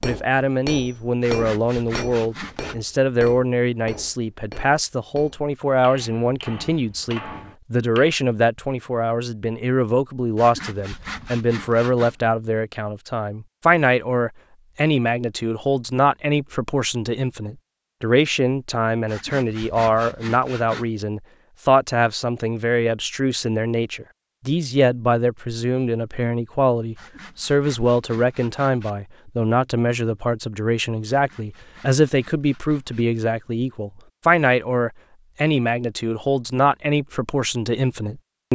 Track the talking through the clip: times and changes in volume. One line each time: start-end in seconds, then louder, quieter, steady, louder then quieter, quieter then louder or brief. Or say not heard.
0.0-38.5 steady.